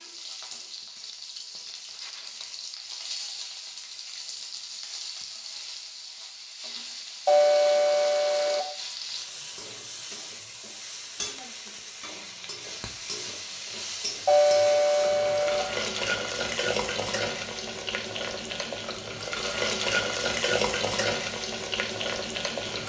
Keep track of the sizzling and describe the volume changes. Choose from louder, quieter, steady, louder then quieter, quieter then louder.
louder.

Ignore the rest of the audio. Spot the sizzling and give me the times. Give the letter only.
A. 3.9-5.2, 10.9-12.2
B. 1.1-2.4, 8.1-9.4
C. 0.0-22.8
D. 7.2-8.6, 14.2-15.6
C.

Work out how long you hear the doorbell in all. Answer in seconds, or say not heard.
3 s.